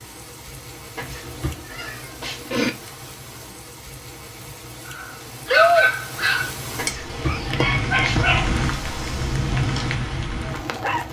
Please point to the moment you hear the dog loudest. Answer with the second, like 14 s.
6 s.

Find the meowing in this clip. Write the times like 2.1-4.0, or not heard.
0.9-2.7, 6.8-8.2.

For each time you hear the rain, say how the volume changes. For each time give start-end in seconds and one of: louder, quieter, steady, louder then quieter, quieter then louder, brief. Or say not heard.
0.0-11.0 louder.